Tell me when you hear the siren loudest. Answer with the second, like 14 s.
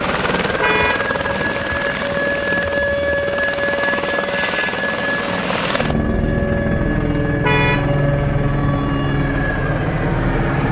3 s.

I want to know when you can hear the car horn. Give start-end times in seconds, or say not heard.
0.6-1.1, 7.4-7.9.